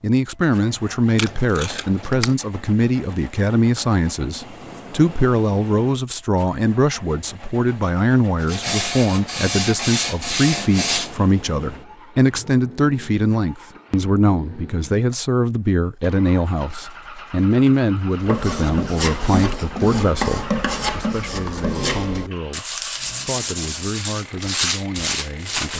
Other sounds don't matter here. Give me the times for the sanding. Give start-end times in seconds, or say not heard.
8.4-11.2, 18.1-25.7.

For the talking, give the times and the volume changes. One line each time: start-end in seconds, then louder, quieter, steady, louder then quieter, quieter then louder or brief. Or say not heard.
0.0-25.7 quieter.